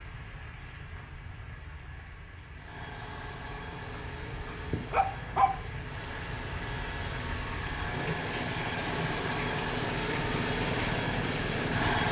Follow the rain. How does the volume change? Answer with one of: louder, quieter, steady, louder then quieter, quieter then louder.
louder.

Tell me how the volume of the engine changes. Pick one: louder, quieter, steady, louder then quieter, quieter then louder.
louder.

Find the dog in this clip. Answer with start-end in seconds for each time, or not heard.
4.0-5.5.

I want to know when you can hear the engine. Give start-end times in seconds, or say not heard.
2.5-12.0.